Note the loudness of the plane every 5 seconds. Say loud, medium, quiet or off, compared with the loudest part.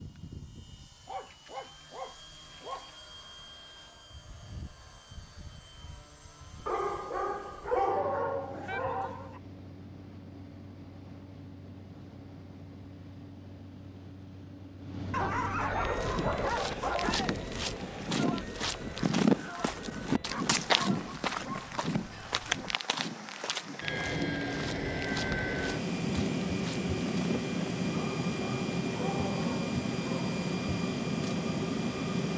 quiet, quiet, quiet, medium, medium, loud, loud.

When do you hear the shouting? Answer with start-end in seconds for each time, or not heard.
8.7-9.3, 16.9-17.4.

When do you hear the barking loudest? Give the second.
8 s.